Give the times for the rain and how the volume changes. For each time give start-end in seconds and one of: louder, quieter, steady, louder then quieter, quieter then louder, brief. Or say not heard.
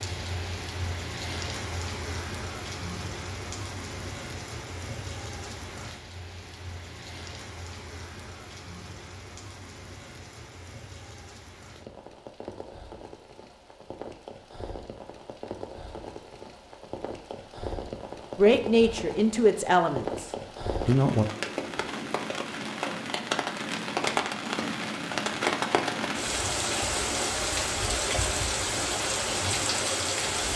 0.0-30.5 quieter then louder.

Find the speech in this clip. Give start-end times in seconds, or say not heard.
18.4-21.2.